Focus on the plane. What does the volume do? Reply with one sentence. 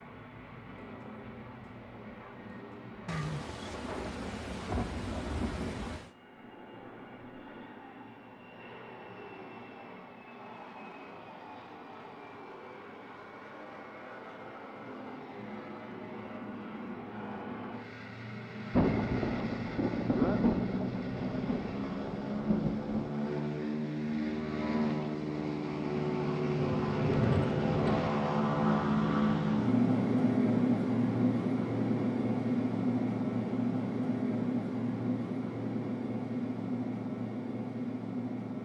The loudness of the plane goes up.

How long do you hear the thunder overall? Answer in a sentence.
The thunder can be heard for 9 seconds in total.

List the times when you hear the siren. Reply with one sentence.
You can't hear the siren here.